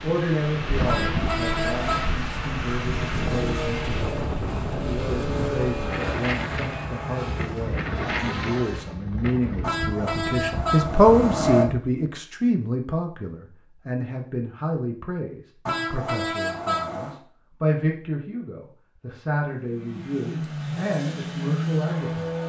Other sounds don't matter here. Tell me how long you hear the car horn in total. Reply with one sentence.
You can hear the car horn for 5 seconds altogether.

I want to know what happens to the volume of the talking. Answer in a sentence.
The loudness of the talking goes up, then down.